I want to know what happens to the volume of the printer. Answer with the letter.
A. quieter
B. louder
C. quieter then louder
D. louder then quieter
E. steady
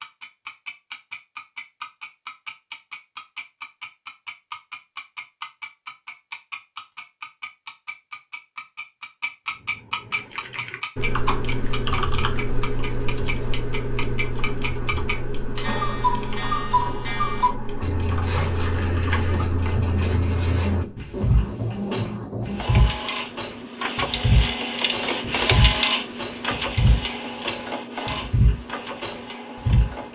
D.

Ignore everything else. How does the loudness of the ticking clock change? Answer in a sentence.
The volume of the ticking clock goes up.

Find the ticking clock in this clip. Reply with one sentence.
You can hear the ticking clock from 0.0 to 29.9 s.